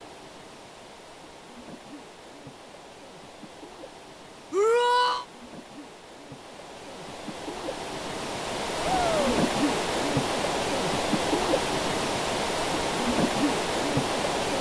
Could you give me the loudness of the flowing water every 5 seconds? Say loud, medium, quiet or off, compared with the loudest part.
quiet, medium, loud.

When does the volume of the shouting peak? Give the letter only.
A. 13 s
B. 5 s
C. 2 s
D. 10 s
B.